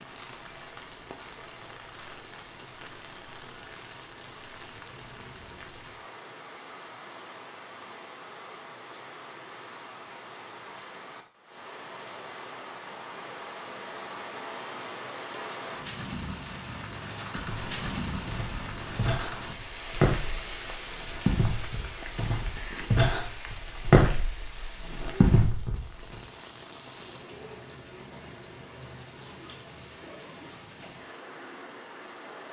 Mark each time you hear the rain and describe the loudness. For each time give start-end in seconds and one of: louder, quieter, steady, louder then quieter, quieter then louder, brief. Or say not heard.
0.0-32.4 louder then quieter.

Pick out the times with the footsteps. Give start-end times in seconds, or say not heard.
17.4-25.9.